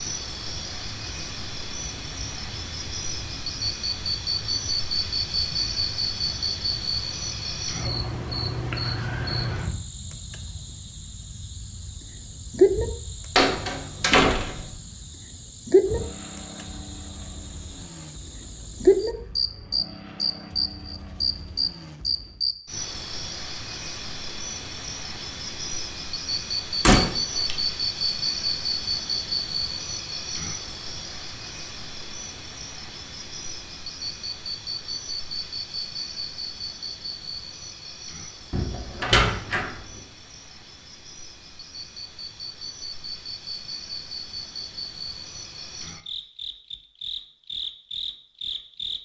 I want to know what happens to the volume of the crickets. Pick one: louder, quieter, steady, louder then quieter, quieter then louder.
quieter.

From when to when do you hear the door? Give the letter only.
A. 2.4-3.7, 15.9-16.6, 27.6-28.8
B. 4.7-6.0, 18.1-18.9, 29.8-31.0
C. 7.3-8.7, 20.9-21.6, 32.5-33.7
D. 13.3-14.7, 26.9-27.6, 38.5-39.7
D.